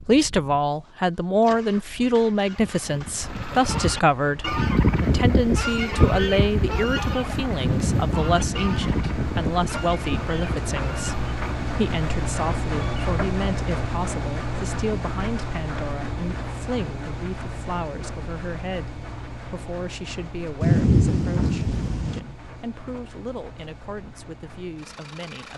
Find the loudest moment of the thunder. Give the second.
21 s.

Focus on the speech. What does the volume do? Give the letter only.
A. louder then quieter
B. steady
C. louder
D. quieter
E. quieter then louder
D.